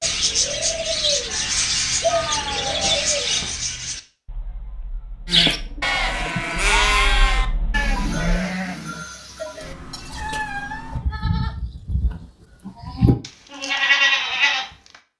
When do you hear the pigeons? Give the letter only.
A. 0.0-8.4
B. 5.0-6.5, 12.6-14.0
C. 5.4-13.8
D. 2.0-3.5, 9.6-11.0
A.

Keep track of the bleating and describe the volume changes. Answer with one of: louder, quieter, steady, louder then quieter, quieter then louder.
quieter then louder.